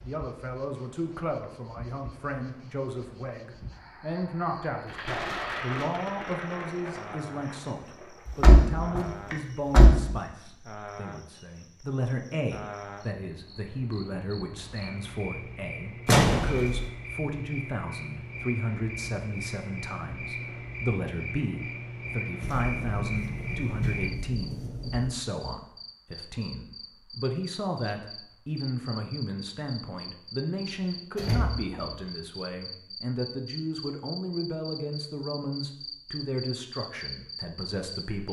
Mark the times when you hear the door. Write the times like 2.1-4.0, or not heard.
8.2-10.0, 16.1-16.9, 31.1-31.8.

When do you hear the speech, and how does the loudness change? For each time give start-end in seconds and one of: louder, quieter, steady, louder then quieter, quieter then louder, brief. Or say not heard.
0.0-38.2 steady.